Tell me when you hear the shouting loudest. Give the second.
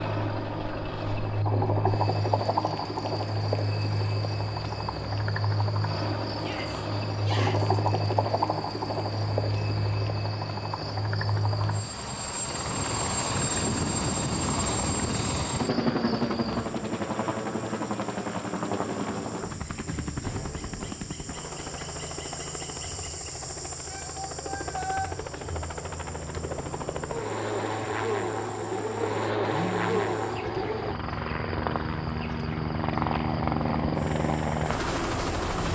25 s.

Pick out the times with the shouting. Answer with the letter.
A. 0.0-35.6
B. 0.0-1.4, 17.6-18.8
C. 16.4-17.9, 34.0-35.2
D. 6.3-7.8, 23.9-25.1
D.